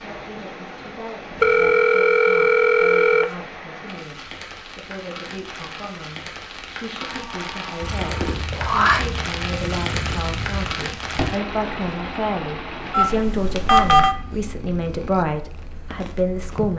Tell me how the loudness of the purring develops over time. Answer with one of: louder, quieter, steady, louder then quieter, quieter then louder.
quieter.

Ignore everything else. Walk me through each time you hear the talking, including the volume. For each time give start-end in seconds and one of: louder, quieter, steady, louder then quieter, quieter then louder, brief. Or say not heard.
0.0-16.7 louder.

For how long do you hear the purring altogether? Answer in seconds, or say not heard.
9 s.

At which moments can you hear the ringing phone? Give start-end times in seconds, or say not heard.
1.4-3.2, 7.0-8.3, 12.9-14.2.